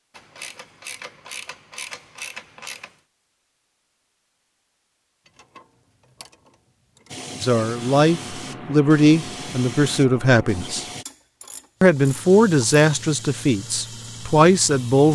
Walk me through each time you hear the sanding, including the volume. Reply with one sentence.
You can't hear the sanding here.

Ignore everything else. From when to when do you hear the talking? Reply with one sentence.
The talking can be heard from 7.4 to 10.8 s and from 11.8 to 15.1 s.